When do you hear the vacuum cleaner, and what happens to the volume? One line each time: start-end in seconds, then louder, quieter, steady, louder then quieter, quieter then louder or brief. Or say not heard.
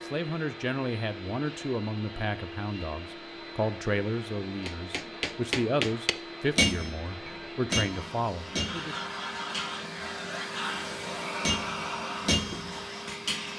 0.0-13.5 louder.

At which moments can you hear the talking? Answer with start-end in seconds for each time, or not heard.
0.1-9.0.